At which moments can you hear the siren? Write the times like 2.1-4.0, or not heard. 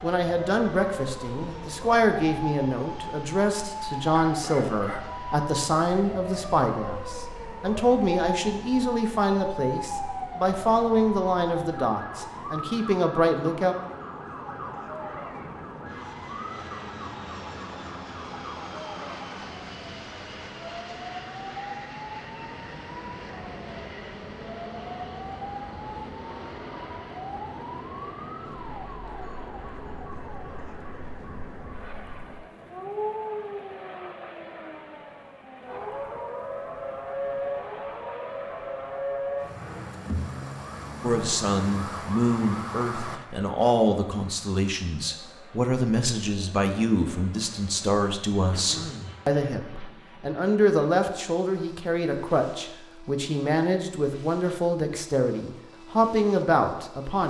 0.1-43.2.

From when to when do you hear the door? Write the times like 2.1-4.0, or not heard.
not heard.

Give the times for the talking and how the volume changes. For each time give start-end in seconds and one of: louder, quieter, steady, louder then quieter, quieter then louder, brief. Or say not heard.
0.0-13.8 steady
41.0-57.2 steady.